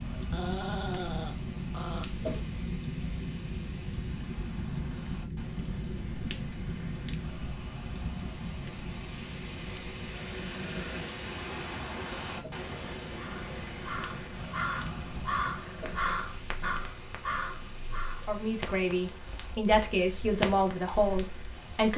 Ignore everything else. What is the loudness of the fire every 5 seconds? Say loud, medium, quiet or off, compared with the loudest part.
loud, loud, medium, medium, loud.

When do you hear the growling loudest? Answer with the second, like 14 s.
1 s.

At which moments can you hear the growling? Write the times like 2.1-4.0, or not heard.
0.1-2.0, 10.3-11.2, 15.5-16.9.